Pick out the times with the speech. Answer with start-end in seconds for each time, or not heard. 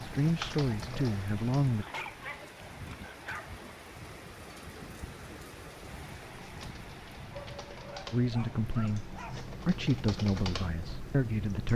0.0-1.9, 8.1-11.7.